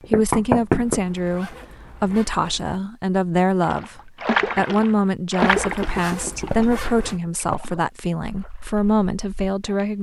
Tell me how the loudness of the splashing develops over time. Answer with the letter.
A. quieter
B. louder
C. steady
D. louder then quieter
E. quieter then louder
A.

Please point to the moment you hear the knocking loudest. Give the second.
1 s.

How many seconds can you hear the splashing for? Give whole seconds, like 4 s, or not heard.
6 s.